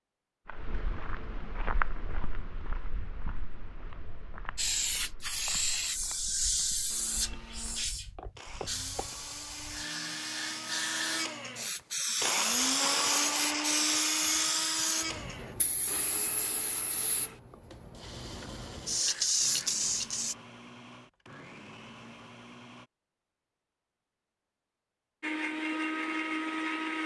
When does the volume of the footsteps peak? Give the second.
2 s.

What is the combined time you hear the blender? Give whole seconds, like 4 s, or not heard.
18 s.